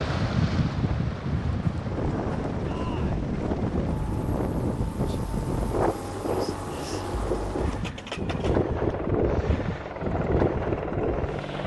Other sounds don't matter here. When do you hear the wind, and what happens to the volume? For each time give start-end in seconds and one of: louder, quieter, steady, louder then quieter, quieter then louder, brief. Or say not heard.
0.0-11.6 steady.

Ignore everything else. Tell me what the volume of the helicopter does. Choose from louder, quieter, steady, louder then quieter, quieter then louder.
steady.